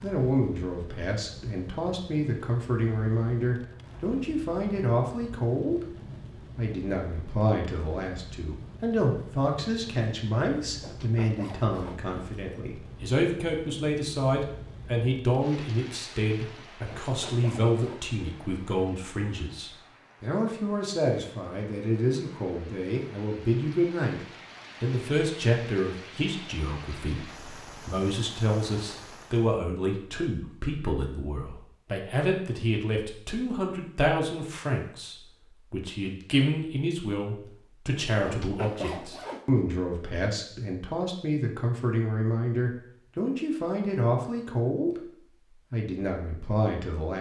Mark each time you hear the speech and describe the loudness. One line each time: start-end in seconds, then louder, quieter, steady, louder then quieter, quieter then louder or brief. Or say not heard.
0.0-47.1 steady.